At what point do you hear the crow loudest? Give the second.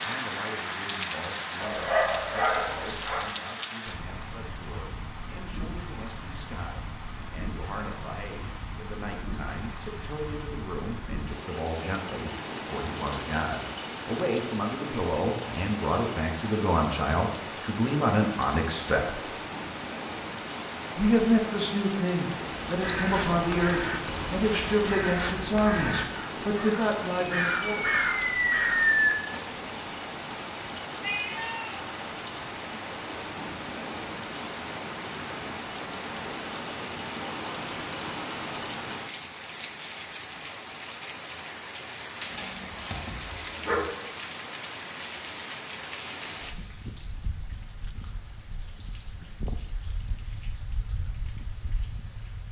29 s.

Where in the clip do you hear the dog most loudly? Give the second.
2 s.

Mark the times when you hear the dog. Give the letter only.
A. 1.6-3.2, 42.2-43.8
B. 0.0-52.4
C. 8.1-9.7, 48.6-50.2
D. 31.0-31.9
A.